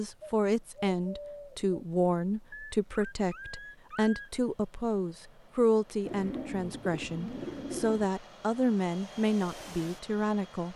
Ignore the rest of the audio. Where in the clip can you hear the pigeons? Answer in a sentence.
You can hear the pigeons from 0.1 to 1.8 s and from 6.0 to 8.1 s.